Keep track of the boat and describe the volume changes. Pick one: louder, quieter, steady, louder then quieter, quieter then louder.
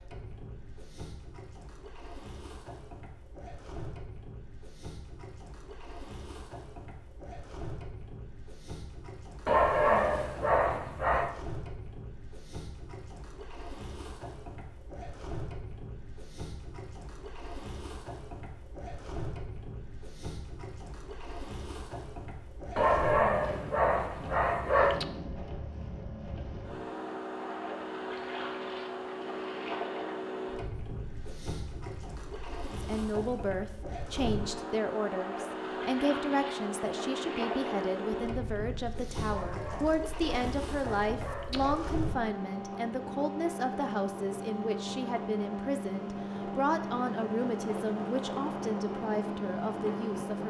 louder.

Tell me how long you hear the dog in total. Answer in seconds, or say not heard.
7 s.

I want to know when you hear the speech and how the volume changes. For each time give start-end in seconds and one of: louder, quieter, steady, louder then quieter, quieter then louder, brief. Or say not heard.
32.8-50.4 steady.